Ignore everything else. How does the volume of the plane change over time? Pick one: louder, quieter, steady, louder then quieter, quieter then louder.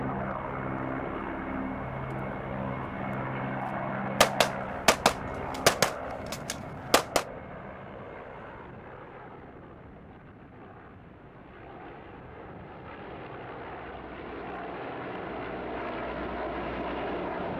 quieter then louder.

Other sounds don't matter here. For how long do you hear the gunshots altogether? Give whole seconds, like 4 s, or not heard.
3 s.